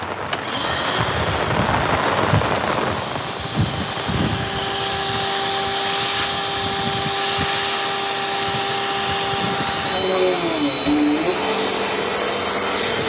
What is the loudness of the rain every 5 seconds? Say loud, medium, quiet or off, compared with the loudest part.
loud, medium, medium.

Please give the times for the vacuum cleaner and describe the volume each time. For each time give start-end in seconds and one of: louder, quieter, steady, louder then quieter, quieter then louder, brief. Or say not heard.
0.0-13.0 louder.